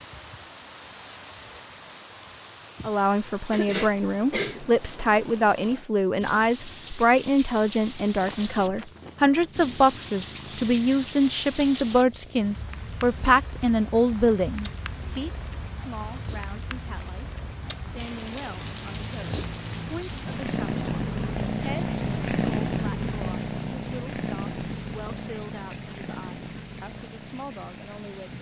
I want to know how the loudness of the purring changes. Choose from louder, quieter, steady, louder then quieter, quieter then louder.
louder then quieter.